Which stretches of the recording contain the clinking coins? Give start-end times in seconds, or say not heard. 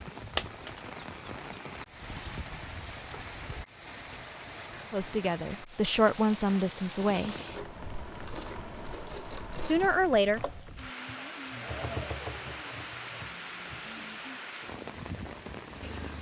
0.3-0.9.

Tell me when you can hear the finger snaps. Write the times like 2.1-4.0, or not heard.
not heard.